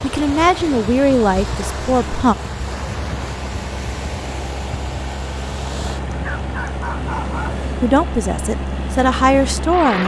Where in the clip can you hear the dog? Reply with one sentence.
You can hear the dog from 6.0 to 7.6 s.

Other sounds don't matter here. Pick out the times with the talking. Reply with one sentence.
You can hear the talking from 0.0 to 2.4 s and from 7.8 to 10.0 s.